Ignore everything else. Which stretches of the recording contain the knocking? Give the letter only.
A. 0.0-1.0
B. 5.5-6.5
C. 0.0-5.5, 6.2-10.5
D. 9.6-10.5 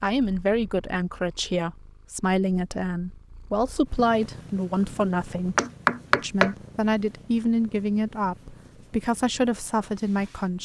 B.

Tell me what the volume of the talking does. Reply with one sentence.
The volume of the talking stays about the same.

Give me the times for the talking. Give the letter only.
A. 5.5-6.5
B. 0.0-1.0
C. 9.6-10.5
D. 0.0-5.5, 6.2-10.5
D.